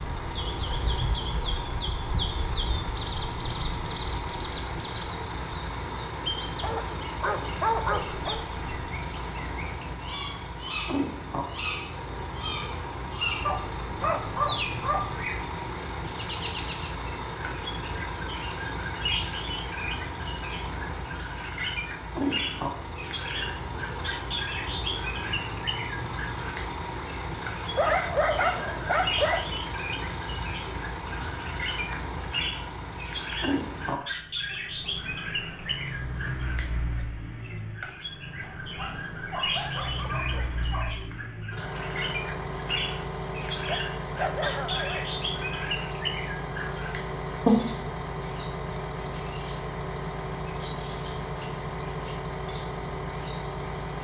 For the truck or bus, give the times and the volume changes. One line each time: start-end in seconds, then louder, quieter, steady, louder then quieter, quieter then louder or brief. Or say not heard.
0.0-53.9 steady.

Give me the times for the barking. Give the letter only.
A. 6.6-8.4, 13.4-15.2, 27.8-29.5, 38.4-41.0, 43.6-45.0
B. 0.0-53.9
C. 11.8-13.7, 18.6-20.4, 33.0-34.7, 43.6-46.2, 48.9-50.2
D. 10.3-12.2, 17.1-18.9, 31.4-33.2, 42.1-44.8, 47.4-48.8
A.